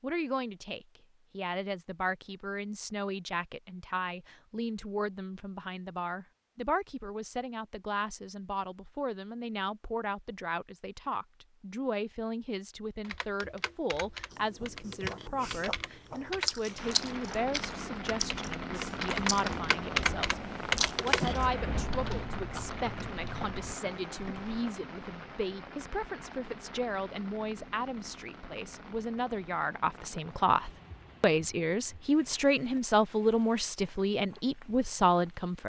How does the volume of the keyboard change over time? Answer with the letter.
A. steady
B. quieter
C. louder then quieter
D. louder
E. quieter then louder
C.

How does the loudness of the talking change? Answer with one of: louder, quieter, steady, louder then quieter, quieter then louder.
louder.